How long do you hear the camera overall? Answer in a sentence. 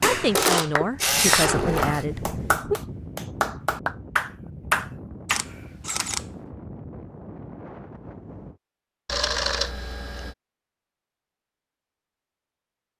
The camera can be heard for 4 seconds in total.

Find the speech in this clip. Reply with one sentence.
You can hear the speech from 0.0 to 2.8 s.